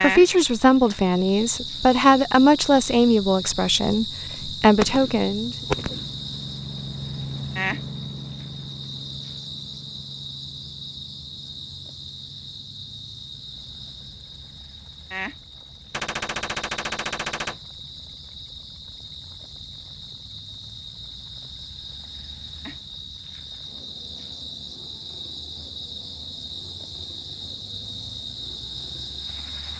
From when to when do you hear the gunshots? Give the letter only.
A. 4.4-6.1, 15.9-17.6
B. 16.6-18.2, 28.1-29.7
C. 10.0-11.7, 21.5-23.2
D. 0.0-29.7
A.